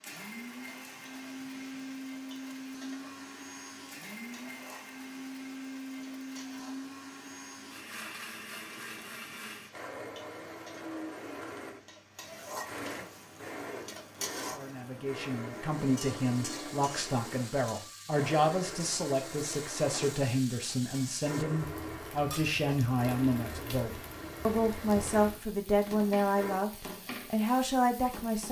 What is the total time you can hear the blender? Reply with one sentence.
The blender can be heard for 27 seconds in total.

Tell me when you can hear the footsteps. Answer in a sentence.
The footsteps can't be heard in this clip.